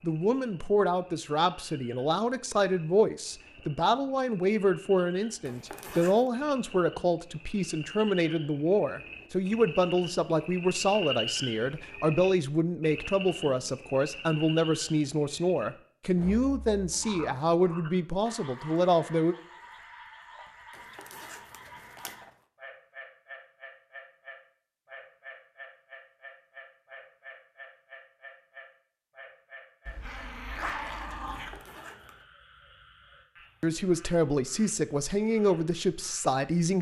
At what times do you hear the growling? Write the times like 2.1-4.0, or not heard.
29.9-31.6.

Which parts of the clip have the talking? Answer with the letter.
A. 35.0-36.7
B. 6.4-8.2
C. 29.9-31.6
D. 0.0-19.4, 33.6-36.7
D.